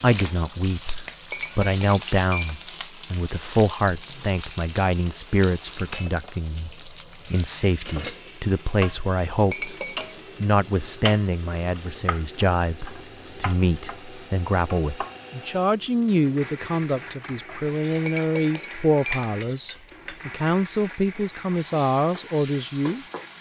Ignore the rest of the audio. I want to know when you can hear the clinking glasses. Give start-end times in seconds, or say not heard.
1.3-2.6, 9.5-10.2, 18.1-19.9.